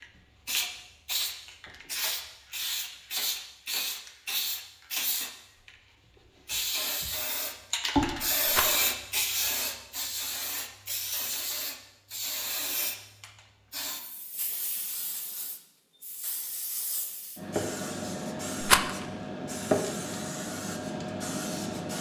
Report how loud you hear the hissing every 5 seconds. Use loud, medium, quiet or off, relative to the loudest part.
loud, loud, medium, loud, loud.